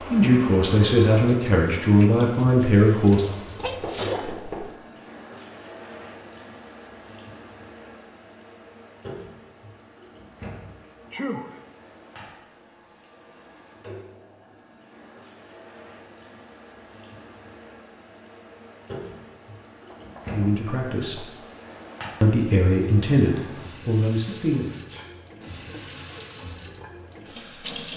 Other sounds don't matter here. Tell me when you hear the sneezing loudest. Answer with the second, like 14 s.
4 s.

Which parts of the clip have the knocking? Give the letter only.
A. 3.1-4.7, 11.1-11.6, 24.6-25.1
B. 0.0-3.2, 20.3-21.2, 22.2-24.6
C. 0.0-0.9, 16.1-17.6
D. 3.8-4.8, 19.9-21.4
D.